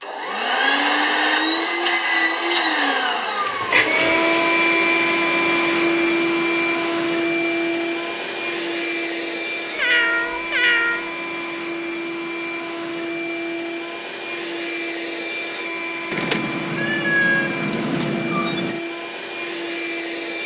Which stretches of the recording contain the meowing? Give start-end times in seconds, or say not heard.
3.0-4.2, 9.8-11.1, 16.1-18.8.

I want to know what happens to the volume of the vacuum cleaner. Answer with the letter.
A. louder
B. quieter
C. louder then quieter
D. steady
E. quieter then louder
B.